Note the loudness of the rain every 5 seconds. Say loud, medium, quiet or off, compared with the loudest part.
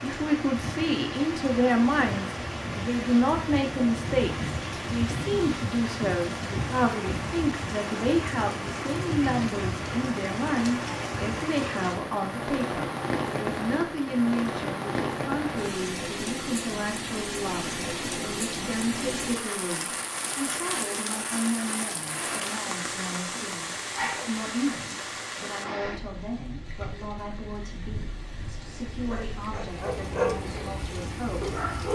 loud, loud, loud, loud, loud, medium, medium.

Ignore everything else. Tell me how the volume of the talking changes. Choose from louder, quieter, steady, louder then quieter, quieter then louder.
quieter.